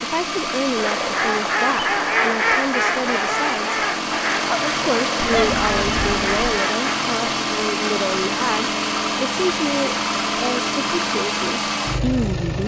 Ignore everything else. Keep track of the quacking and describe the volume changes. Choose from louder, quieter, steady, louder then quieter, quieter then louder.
quieter.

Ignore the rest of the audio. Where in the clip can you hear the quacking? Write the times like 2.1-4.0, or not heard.
0.8-6.9.